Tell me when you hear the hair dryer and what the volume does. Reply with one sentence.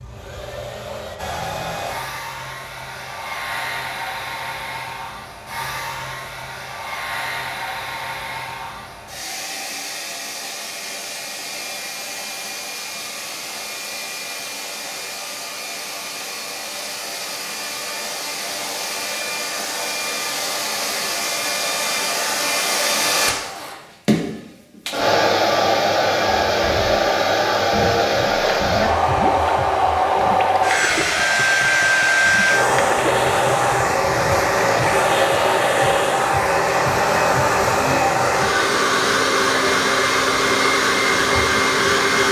The hair dryer can be heard from 0.0 to 42.2 s, getting louder.